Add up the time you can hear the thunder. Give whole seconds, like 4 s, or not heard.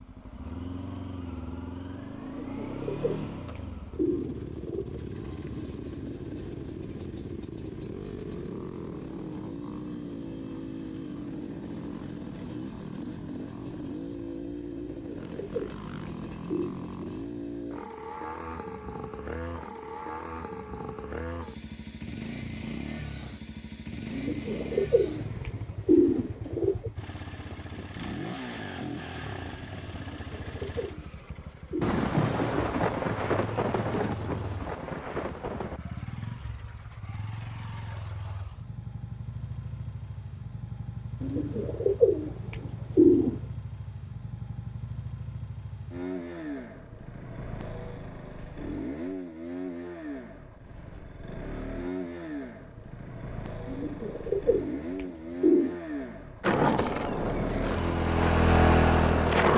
4 s.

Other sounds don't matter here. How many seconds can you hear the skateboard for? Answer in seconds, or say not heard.
3 s.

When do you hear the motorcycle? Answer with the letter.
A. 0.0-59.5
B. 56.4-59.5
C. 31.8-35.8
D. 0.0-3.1
A.